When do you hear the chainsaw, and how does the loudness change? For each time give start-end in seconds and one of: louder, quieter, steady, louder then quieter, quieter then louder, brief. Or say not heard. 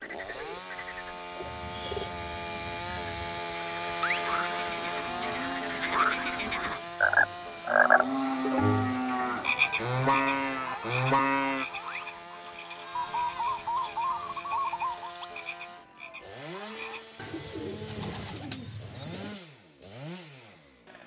0.0-21.0 quieter.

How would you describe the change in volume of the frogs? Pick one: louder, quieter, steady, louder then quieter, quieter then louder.
louder then quieter.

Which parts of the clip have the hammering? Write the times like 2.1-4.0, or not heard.
not heard.